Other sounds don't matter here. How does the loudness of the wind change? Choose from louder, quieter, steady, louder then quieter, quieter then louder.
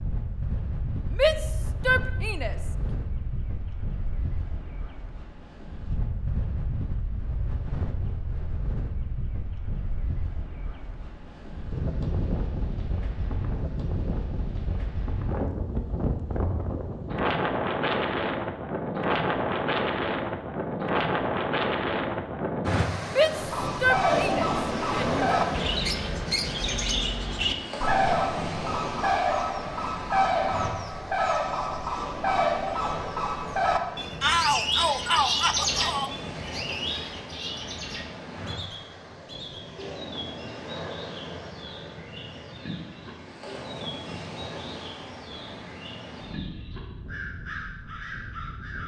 louder then quieter.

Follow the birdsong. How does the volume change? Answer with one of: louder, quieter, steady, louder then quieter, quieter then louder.
quieter.